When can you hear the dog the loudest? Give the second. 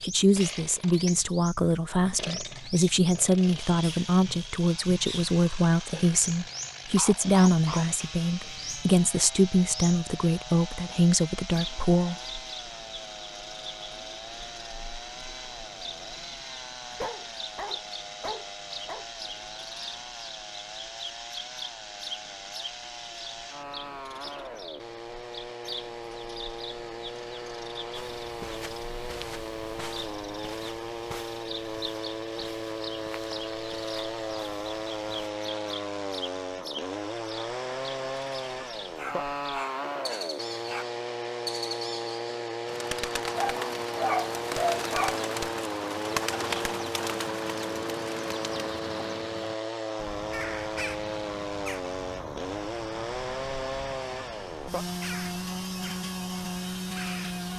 44 s.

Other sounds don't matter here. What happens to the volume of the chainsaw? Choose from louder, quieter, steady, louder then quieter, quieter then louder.
louder.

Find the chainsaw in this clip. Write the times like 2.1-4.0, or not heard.
0.0-57.5.